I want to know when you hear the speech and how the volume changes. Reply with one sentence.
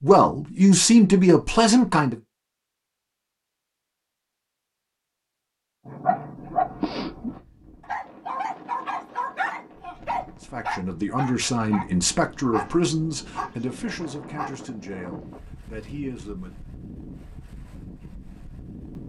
The speech can be heard briefly from 0.0 to 2.1 s; and from 10.4 to 16.6 s, getting quieter.